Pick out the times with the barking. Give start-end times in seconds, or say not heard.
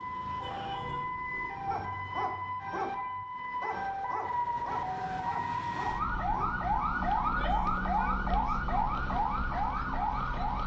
1.6-6.5.